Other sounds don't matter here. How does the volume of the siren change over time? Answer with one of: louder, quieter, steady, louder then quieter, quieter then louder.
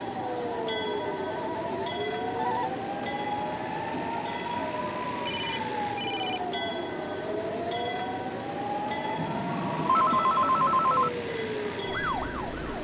steady.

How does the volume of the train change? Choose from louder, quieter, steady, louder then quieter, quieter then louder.
steady.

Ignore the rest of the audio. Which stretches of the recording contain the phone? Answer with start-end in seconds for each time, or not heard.
0.5-2.7, 5.2-6.4, 9.2-11.1.